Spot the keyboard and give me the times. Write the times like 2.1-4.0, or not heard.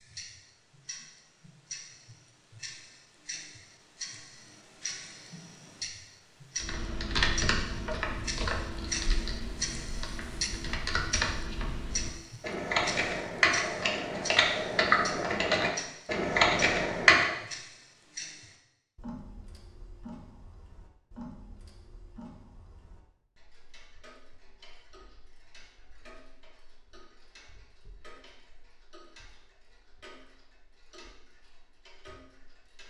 6.6-17.4.